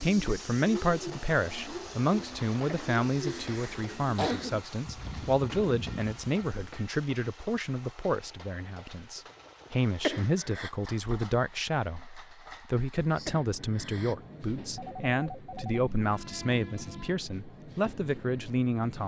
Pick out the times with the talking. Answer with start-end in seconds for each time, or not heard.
0.0-19.0.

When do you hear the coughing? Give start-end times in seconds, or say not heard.
2.6-4.7, 10.0-10.7, 13.2-14.2.